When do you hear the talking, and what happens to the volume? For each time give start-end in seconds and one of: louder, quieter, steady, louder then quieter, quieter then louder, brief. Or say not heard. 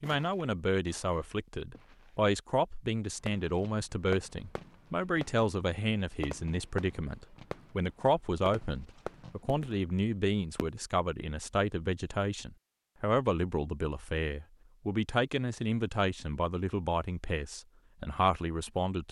0.0-19.0 steady.